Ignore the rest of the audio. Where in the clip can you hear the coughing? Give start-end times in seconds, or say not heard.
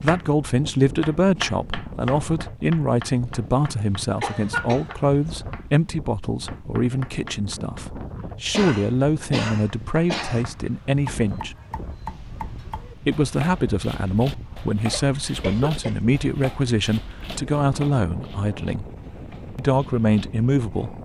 4.2-5.0, 8.5-10.4, 14.9-16.1.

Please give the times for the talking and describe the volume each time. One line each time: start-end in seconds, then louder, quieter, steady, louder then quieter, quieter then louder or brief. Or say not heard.
0.0-11.6 steady
13.0-18.9 steady
19.6-21.0 brief.